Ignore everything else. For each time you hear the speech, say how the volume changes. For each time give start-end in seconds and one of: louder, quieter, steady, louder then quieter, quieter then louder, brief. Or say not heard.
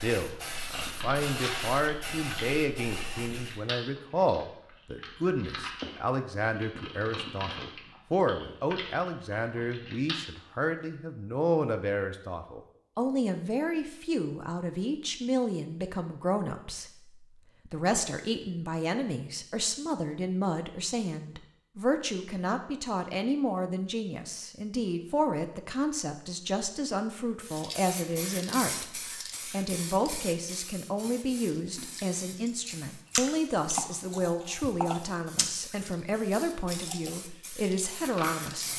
0.0-38.7 steady.